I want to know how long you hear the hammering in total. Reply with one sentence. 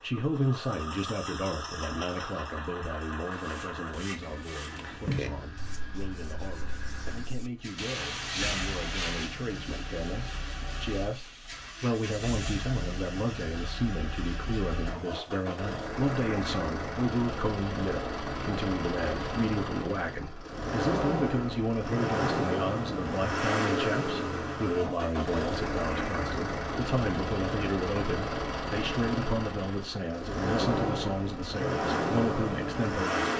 You can't hear the hammering here.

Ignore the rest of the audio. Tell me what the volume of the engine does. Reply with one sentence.
The loudness of the engine goes up.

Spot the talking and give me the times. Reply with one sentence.
The talking can be heard from 0.0 to 33.3 s.